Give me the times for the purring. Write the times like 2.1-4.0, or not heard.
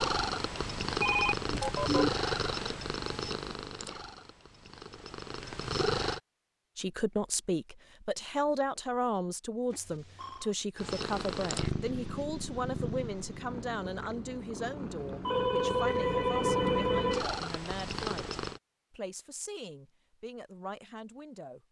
0.0-6.2, 10.8-18.6.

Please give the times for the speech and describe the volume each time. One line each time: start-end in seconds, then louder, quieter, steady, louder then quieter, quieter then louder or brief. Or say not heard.
6.8-21.6 quieter.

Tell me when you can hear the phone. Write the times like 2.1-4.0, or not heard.
1.0-2.1, 9.7-10.6, 15.2-17.2.